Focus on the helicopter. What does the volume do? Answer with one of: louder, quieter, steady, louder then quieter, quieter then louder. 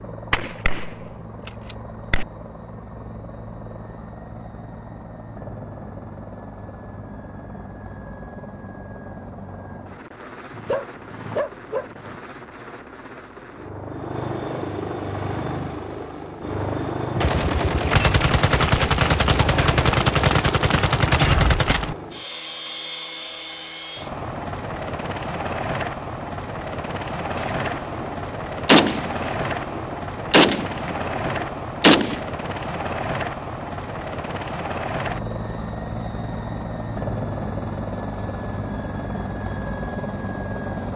louder.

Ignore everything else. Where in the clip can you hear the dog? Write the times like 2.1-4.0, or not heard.
10.5-12.2.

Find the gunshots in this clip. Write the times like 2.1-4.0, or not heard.
0.3-2.2, 17.1-21.9, 27.4-32.2.